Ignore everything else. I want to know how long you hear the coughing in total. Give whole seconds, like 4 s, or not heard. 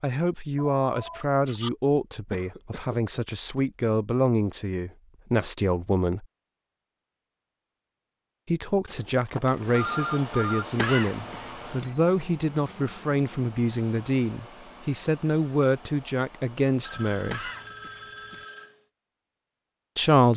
3 s.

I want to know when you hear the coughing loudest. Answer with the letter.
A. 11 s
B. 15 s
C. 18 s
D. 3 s
A.